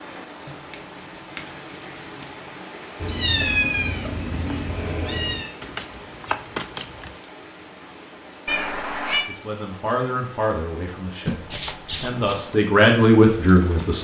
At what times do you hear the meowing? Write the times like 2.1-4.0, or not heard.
3.0-5.5, 8.4-9.2.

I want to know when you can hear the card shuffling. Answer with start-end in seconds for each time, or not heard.
0.5-2.3, 5.6-7.2, 11.2-12.4.